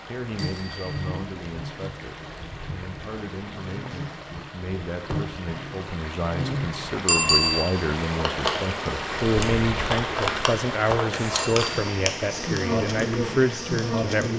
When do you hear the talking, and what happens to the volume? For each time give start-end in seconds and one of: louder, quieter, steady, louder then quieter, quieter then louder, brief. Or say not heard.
0.1-14.3 louder.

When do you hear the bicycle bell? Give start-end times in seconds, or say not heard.
0.3-1.2, 7.0-7.7, 11.3-11.8.